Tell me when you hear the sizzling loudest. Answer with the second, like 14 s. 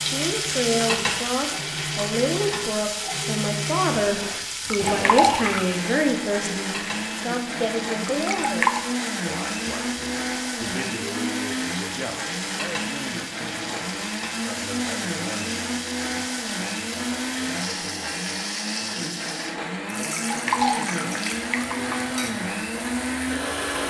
1 s.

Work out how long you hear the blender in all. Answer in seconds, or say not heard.
24 s.